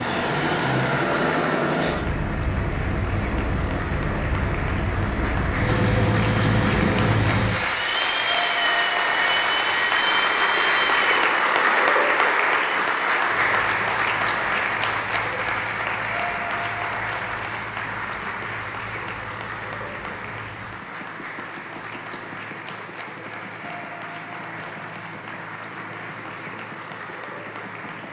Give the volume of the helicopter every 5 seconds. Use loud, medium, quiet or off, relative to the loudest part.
loud, loud, medium, quiet, quiet, quiet.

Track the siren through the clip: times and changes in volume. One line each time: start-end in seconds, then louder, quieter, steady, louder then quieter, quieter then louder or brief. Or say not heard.
not heard.